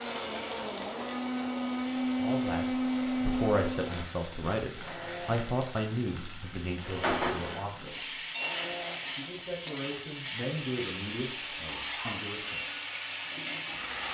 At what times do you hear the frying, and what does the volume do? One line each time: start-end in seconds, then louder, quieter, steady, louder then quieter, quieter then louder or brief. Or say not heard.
0.0-14.1 louder.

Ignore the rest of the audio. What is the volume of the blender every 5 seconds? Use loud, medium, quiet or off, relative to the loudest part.
loud, medium, medium.